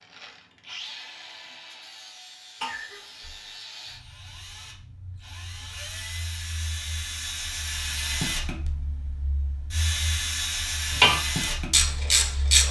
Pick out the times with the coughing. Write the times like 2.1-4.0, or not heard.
2.6-3.5.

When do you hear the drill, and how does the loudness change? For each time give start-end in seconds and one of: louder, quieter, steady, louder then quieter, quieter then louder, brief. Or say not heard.
0.0-12.6 louder.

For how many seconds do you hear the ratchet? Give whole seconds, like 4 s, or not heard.
2 s.